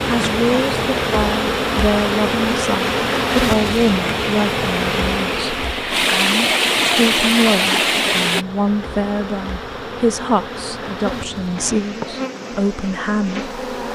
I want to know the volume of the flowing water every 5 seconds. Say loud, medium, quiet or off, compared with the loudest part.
medium, loud, off.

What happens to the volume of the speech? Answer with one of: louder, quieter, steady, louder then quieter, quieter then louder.
steady.